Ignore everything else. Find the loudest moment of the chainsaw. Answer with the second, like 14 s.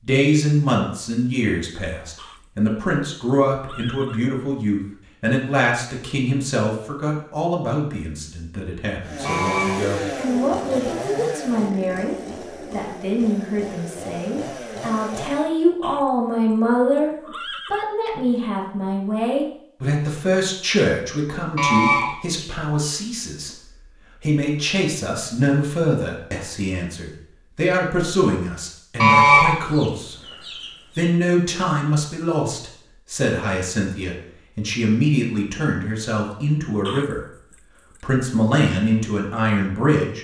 10 s.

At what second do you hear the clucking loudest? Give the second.
29 s.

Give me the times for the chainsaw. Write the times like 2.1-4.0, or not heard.
9.0-15.5.